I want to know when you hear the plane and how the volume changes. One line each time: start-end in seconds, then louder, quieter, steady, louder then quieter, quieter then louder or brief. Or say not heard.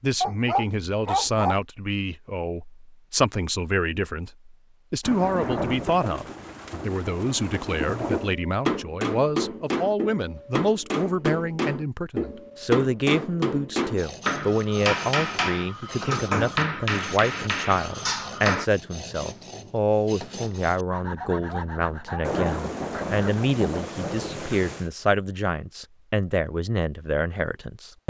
not heard.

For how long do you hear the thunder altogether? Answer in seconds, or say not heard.
6 s.